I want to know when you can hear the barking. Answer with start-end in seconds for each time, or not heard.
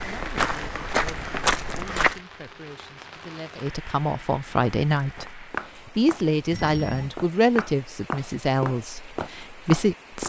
not heard.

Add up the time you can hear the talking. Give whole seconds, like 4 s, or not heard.
10 s.